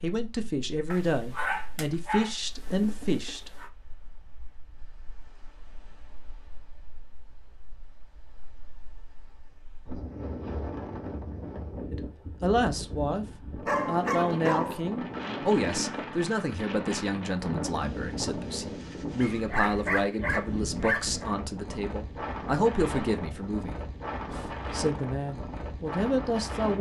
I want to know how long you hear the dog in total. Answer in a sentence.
You can hear the dog for 6 seconds altogether.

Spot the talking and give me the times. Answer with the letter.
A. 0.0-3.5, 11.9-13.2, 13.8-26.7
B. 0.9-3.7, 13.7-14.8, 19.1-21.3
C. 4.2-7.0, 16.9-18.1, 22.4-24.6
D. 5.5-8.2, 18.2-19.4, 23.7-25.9
A.